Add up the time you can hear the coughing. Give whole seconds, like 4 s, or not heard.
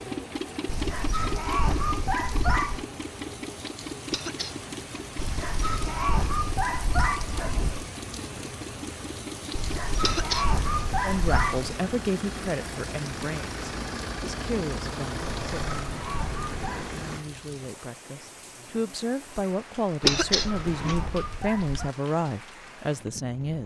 2 s.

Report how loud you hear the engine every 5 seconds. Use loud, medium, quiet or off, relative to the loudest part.
loud, medium, loud, loud, off.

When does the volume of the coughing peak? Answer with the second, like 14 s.
20 s.